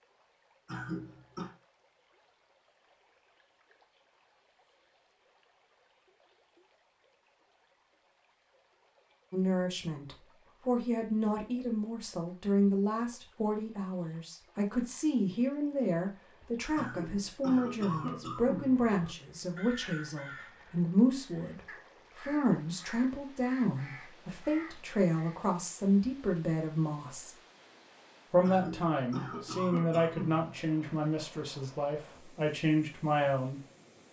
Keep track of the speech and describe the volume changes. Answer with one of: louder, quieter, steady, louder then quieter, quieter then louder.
steady.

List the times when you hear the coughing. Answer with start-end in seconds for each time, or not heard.
0.7-1.5, 16.8-18.9, 28.4-30.6.